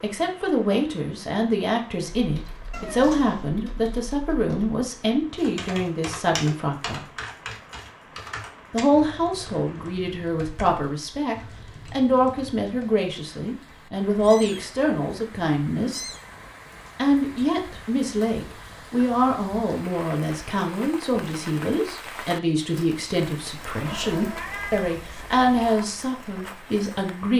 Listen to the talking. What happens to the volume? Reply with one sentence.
The volume of the talking stays about the same.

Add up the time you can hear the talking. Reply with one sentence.
You can hear the talking for 25 seconds altogether.